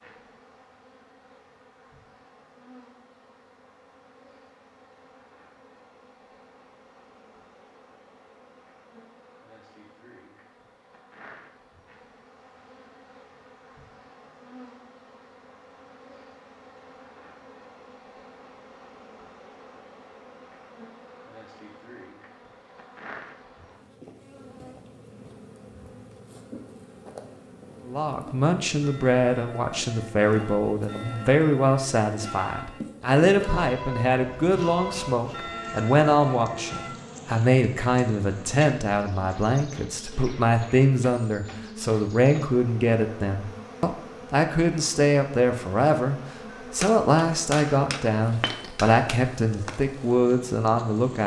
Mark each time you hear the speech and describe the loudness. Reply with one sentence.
You can hear the speech from 27.9 to 51.2 s, at a steady volume.